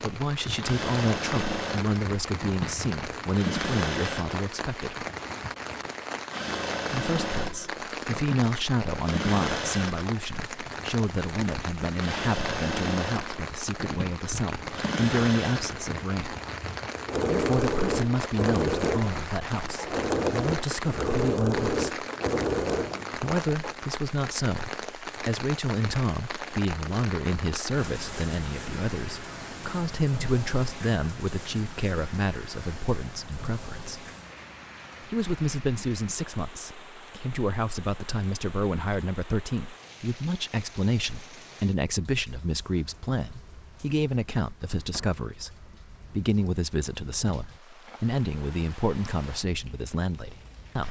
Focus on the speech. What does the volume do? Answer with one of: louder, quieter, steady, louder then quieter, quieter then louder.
steady.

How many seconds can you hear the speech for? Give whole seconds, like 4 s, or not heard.
46 s.